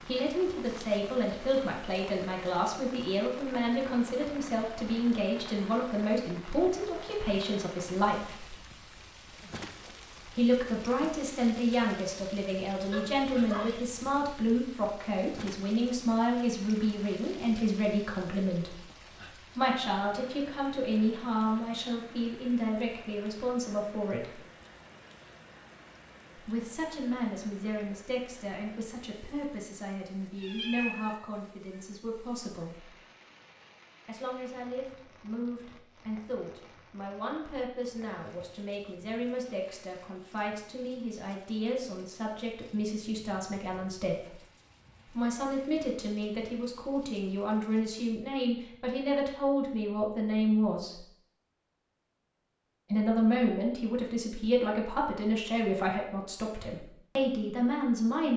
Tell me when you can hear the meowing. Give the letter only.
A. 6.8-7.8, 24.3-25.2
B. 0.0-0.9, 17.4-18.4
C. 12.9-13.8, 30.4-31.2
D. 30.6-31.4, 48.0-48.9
C.